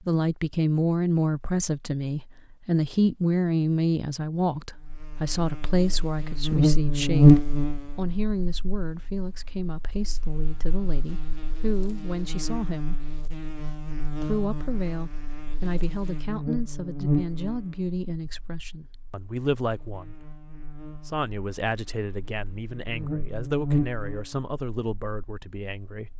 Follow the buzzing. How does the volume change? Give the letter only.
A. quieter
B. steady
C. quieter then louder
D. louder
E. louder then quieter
C.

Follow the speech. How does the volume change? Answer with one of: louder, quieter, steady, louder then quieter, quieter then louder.
quieter.